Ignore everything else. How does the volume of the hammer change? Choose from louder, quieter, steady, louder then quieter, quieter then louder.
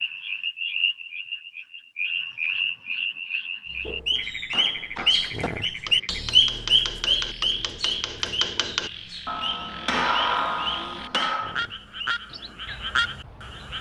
louder.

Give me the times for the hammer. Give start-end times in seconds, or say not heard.
4.2-11.6.